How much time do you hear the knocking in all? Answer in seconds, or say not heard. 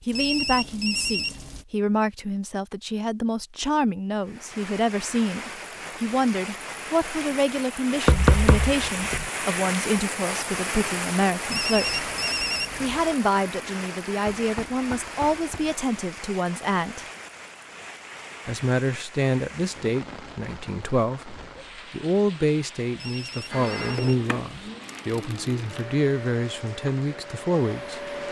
3 s.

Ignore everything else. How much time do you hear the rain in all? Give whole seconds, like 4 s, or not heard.
24 s.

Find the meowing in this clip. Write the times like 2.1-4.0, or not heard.
not heard.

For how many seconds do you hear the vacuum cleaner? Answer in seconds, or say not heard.
5 s.